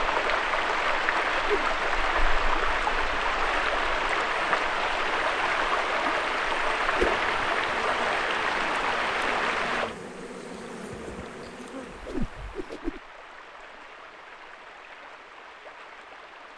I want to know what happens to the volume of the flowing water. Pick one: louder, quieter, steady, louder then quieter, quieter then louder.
quieter.